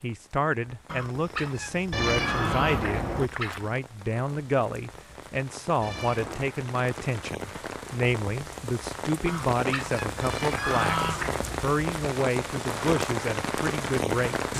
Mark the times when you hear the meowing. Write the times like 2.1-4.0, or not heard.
1.9-3.3, 5.8-6.5, 10.2-11.6.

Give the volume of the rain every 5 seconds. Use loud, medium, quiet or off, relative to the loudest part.
quiet, medium, loud.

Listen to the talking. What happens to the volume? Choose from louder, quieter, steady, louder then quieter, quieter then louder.
steady.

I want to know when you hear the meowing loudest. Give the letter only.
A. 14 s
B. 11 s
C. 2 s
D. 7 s
C.